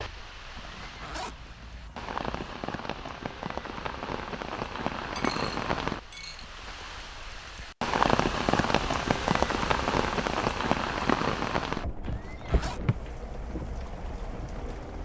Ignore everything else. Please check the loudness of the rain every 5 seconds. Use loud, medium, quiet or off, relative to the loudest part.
medium, loud, loud.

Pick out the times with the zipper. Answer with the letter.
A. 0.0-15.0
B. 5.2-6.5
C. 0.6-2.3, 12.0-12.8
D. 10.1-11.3
C.